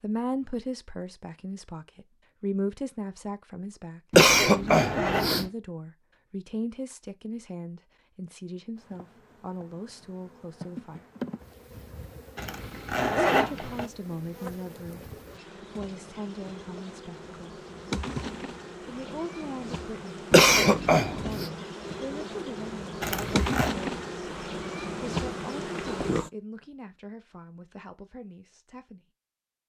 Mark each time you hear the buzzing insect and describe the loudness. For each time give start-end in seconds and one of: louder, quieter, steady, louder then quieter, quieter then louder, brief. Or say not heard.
8.8-26.3 louder.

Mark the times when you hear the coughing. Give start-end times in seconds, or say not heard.
4.1-5.5, 20.3-21.4.